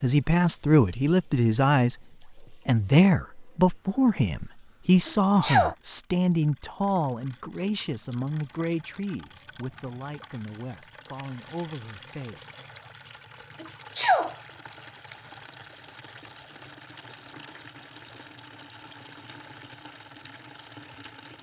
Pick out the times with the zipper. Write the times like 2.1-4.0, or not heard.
not heard.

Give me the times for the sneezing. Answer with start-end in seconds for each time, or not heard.
5.0-5.8, 13.6-14.3.